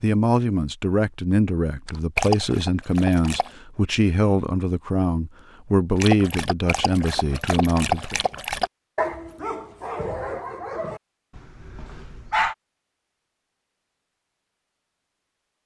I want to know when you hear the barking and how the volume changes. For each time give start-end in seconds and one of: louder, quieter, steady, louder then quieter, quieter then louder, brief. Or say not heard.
1.9-3.5 brief
6.0-12.6 louder then quieter.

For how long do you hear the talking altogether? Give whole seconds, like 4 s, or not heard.
8 s.